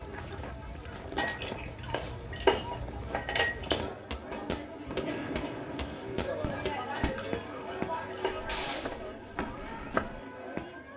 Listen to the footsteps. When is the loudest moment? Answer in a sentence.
The volume of the footsteps peaks at 10 seconds.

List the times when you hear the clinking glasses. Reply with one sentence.
The clinking glasses can be heard from 1.1 to 3.8 s and from 7.0 to 9.1 s.